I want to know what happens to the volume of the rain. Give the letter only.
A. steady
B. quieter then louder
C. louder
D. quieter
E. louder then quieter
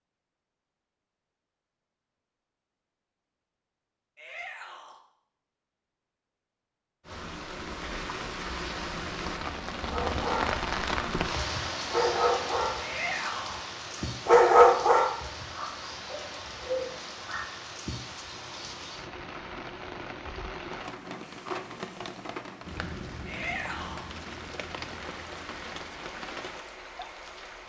D.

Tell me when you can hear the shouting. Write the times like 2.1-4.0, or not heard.
4.2-5.0, 12.8-13.7, 23.2-24.1.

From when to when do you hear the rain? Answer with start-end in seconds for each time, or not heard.
7.0-27.6.